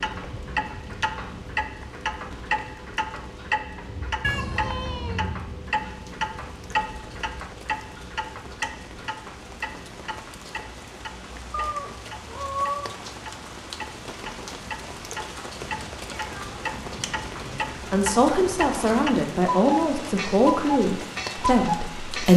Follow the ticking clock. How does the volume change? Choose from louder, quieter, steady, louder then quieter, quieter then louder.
quieter then louder.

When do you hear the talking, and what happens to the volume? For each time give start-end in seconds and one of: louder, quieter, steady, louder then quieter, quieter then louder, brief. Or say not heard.
17.9-22.3 steady.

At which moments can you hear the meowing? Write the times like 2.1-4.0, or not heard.
4.2-5.2, 11.5-12.9, 15.6-17.6.